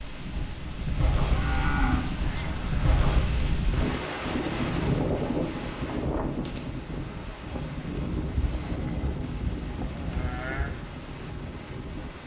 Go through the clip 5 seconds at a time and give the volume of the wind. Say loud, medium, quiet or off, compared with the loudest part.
loud, loud, medium.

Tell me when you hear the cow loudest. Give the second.
2 s.